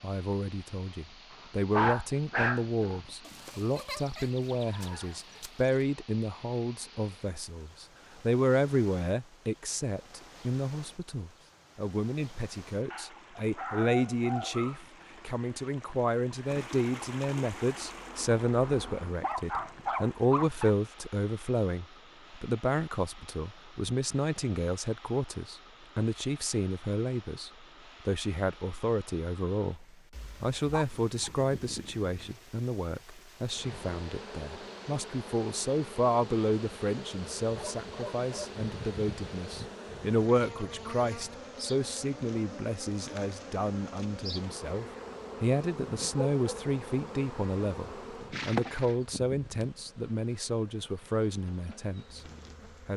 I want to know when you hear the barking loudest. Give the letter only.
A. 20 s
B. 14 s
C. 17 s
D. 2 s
D.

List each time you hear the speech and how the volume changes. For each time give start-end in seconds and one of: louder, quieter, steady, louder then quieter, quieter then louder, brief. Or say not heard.
0.0-52.2 steady.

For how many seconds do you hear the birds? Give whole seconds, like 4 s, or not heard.
not heard.